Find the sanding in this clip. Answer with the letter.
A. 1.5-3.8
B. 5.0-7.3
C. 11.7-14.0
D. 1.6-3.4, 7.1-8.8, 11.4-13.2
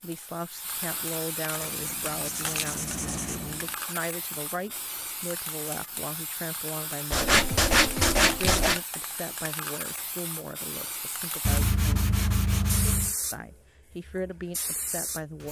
D.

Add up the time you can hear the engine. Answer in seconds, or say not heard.
2 s.